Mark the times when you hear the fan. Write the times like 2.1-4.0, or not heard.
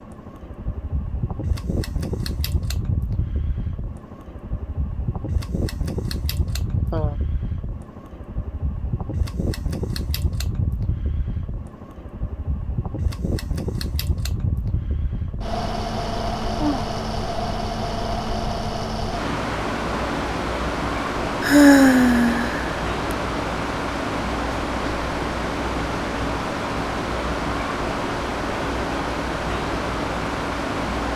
0.0-31.1.